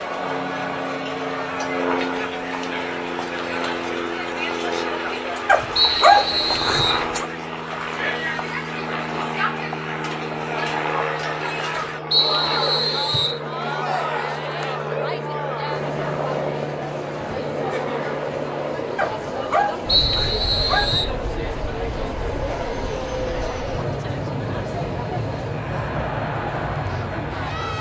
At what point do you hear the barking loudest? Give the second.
6 s.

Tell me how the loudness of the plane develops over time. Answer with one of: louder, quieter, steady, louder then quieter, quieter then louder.
steady.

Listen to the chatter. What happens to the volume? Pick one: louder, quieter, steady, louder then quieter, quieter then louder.
steady.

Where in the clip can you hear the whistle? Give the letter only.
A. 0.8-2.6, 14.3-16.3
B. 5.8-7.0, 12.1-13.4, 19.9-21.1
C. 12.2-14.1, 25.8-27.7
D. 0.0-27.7
B.